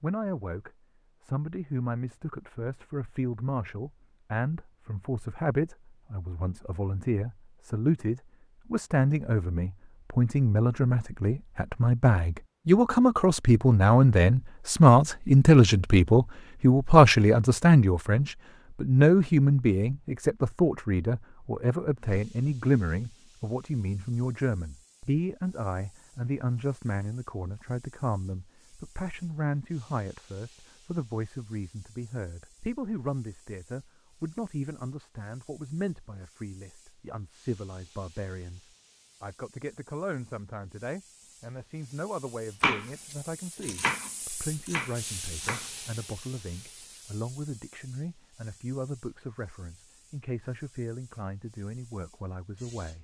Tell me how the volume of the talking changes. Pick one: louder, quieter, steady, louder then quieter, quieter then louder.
louder then quieter.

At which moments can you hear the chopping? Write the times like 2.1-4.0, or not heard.
42.6-45.7.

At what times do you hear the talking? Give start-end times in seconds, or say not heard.
0.0-52.9.